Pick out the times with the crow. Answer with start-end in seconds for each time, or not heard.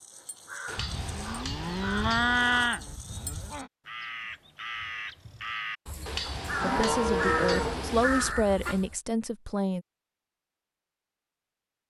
0.0-8.9.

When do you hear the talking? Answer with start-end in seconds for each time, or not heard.
6.6-9.8.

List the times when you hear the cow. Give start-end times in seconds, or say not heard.
0.8-3.7, 6.6-8.3.